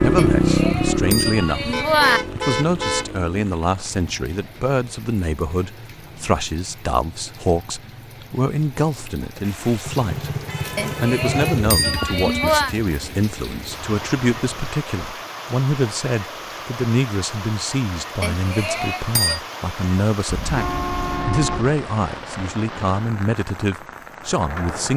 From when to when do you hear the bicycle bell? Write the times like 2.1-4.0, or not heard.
0.1-2.2, 10.8-12.8, 18.2-19.4.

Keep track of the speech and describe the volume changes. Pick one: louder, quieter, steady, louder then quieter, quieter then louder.
steady.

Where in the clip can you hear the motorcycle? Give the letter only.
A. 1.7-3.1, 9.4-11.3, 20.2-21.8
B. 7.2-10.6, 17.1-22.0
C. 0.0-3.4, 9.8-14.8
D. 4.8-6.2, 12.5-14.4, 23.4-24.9
C.